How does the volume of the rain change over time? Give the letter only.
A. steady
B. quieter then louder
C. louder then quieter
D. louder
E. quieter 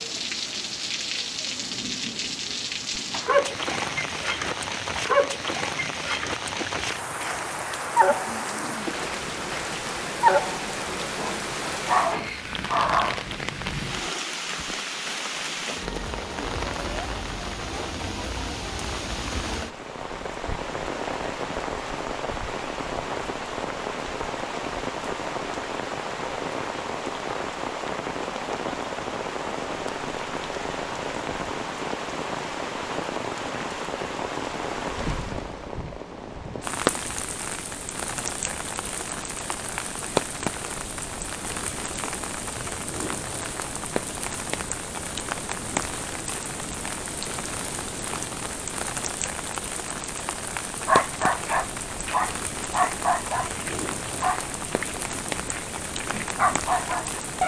A.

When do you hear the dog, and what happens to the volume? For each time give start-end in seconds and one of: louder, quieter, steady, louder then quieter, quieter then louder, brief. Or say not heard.
3.0-13.2 quieter then louder
50.8-57.4 quieter then louder.